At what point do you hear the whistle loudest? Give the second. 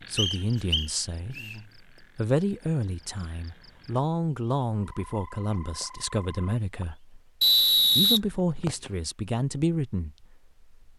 8 s.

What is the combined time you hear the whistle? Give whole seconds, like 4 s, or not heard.
3 s.